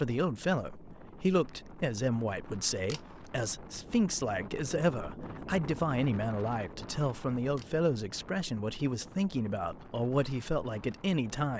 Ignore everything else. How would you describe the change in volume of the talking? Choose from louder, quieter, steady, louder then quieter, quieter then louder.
steady.